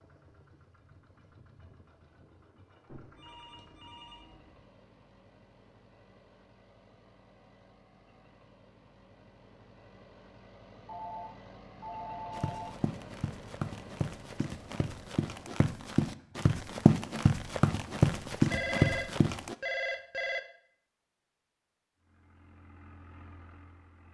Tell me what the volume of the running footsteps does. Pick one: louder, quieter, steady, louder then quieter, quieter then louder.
louder.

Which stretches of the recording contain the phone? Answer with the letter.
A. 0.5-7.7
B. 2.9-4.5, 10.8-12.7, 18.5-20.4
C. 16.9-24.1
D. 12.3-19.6
B.